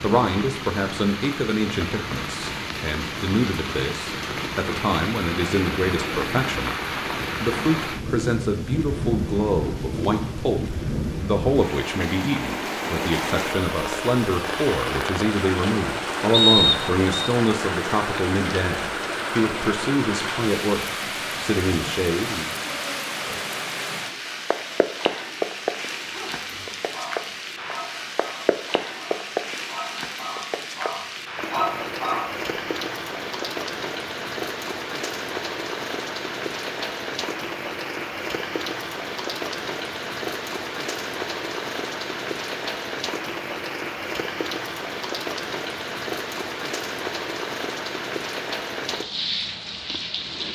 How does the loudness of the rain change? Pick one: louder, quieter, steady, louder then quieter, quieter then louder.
steady.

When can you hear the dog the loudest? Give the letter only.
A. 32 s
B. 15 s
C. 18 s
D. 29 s
A.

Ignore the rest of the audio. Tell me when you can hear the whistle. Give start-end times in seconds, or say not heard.
16.3-17.3.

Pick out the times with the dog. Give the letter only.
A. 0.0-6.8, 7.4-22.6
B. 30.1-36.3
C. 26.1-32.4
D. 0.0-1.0
C.